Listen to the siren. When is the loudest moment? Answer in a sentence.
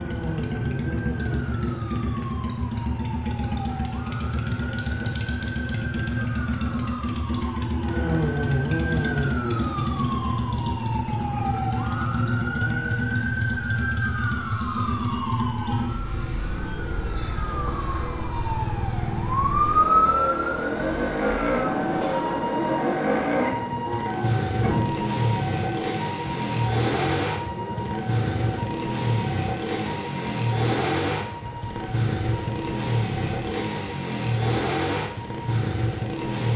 The loudest moment of the siren is at 20 seconds.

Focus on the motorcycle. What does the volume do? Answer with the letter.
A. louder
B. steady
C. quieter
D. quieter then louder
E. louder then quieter
B.